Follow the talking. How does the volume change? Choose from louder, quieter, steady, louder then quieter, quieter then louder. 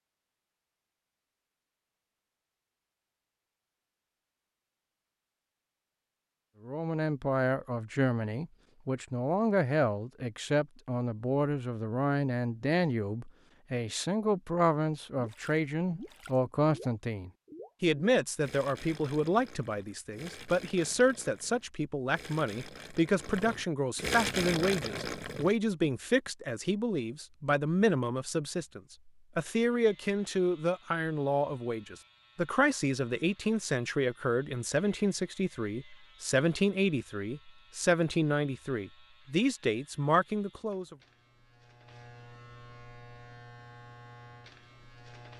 steady.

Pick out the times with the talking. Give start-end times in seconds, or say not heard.
6.7-41.0.